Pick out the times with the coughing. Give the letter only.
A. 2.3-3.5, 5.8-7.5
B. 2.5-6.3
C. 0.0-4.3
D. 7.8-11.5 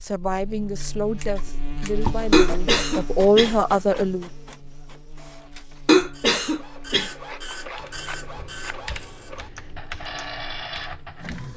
A.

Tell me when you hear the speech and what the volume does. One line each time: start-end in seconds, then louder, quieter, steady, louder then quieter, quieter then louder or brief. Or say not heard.
0.0-4.3 louder.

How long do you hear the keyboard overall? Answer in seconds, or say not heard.
4 s.